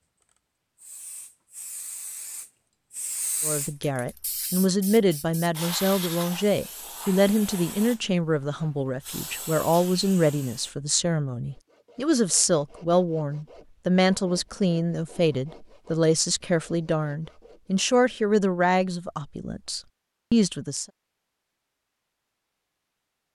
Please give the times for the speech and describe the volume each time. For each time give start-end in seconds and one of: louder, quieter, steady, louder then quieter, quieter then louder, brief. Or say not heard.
3.4-20.9 steady.